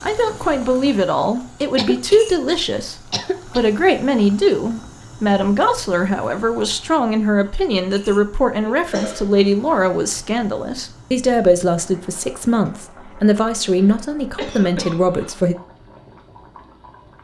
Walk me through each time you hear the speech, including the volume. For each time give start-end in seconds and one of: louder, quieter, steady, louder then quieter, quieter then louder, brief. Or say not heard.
0.0-15.6 steady.